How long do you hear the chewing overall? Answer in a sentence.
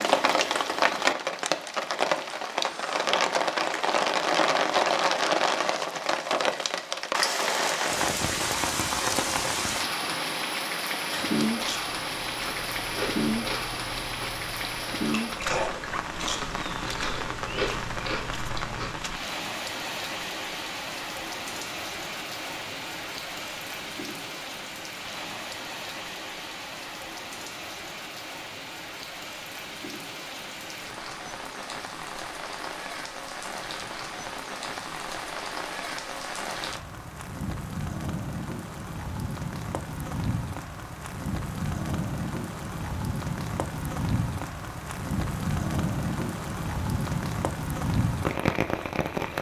The chewing can be heard for 8 seconds in total.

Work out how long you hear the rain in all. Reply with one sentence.
The rain can be heard for 49 seconds in total.